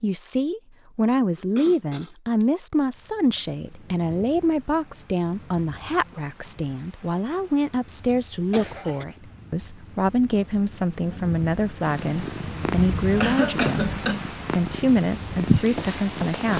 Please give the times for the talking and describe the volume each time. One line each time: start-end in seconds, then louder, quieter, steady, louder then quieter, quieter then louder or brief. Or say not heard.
0.0-16.5 steady.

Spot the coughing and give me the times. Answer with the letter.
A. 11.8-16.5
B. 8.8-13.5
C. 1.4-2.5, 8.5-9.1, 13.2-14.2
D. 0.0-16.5
C.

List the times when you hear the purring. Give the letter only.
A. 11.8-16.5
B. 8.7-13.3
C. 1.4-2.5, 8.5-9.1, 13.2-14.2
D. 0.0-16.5
A.